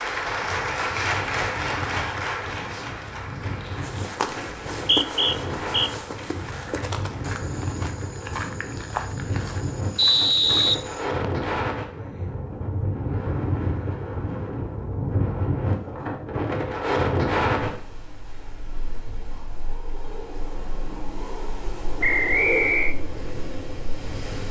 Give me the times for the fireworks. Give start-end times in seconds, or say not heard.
not heard.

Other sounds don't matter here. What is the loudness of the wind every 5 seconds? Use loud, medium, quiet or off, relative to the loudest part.
medium, medium, loud, loud, medium.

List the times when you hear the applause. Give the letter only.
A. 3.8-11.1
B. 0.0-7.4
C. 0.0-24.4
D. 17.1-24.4
B.